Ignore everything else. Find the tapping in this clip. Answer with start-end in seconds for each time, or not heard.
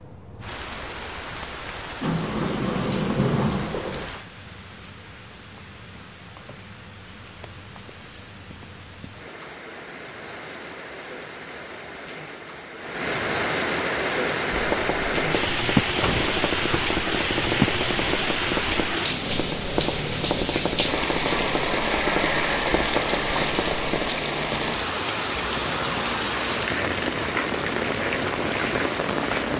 14.5-24.2.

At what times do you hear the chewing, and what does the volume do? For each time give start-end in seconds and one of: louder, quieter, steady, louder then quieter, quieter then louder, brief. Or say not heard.
not heard.